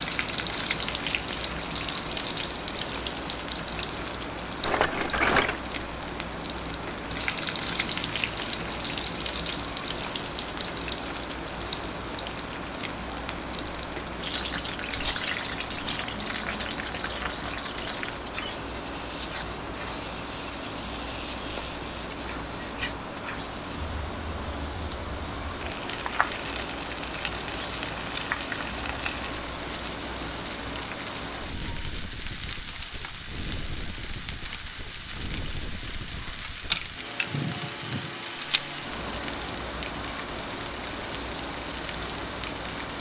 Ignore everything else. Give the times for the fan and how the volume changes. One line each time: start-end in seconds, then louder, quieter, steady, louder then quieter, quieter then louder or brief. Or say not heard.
0.0-42.9 steady.